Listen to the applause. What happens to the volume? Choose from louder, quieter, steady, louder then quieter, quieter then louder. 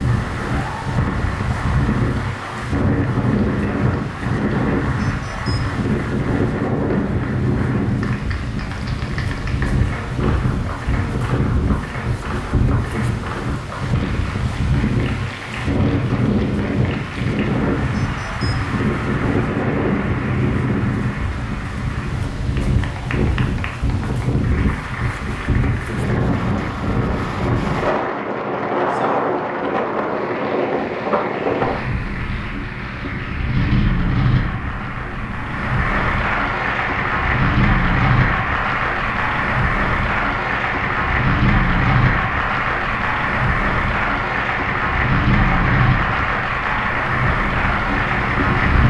louder.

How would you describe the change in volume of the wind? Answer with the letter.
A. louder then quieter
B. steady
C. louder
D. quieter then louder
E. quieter
B.